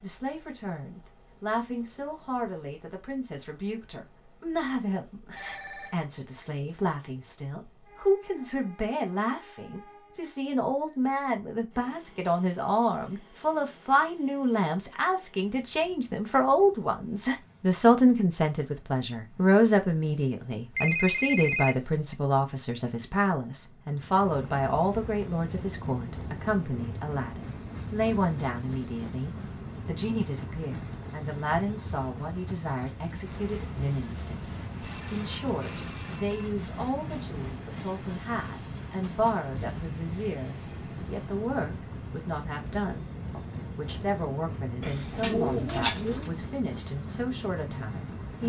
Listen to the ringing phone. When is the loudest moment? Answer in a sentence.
The loudest moment of the ringing phone is at 21 seconds.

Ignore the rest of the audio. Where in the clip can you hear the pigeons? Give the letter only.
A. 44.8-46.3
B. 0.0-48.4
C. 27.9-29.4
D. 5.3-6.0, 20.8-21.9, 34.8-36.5
A.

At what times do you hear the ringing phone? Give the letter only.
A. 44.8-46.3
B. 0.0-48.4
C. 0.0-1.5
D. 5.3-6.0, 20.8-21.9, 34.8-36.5
D.